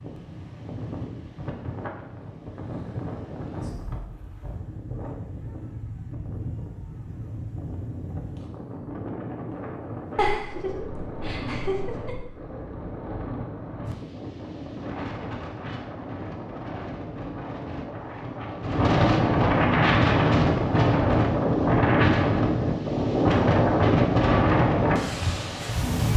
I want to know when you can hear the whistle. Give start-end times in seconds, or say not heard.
not heard.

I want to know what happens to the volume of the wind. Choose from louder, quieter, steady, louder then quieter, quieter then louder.
louder.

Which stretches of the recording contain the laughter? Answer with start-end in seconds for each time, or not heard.
10.2-12.2.